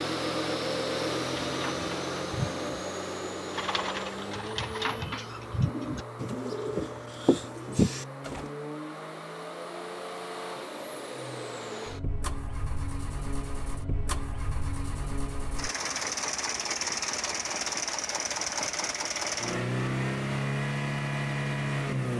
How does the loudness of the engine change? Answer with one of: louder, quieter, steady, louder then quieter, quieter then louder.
quieter then louder.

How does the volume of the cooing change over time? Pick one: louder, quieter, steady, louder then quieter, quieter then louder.
louder.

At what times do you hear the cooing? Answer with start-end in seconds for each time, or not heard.
1.4-8.5.